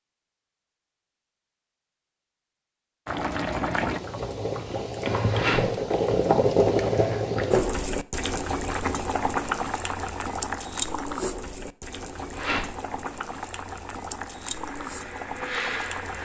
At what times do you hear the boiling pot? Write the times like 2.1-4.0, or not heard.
3.0-16.2.